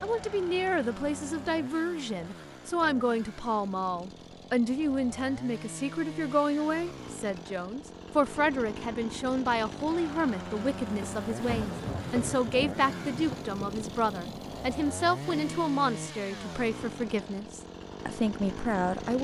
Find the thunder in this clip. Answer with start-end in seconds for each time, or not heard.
11.2-15.7.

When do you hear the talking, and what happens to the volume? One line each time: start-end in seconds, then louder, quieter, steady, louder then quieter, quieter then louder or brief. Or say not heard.
0.0-19.1 steady.